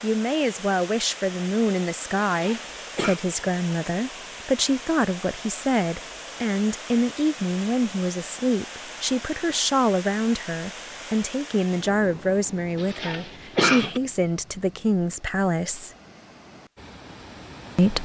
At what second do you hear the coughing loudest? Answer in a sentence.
The volume of the coughing peaks at 14 seconds.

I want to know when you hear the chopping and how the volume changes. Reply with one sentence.
You can't hear the chopping here.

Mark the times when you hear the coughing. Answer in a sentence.
You can hear the coughing from 2.4 to 3.2 s and from 12.8 to 14.0 s.